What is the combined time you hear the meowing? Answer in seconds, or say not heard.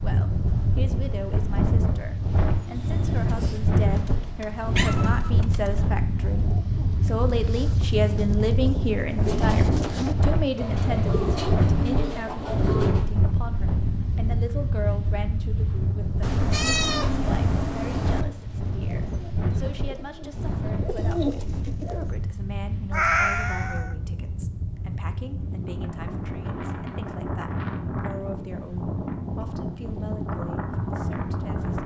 4 s.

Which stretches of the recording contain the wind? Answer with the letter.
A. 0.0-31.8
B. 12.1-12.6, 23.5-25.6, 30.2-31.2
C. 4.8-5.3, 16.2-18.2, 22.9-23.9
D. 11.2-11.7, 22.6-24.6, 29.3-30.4
A.